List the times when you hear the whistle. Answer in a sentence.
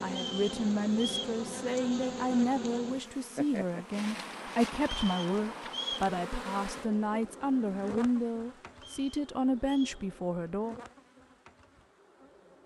The whistle can be heard from 0.1 to 1.3 s, from 4.8 to 6.1 s and from 8.8 to 10.1 s.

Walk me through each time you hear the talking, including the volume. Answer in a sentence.
You can hear the talking from 0.0 to 10.8 s, at a steady volume.